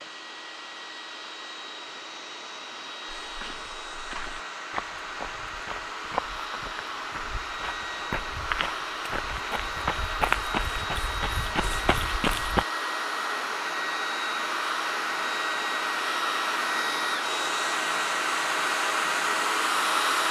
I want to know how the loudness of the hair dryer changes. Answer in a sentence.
The loudness of the hair dryer goes up.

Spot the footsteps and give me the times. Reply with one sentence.
The footsteps can be heard from 3.2 to 12.7 s.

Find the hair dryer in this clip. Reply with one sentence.
The hair dryer can be heard from 0.0 to 20.2 s.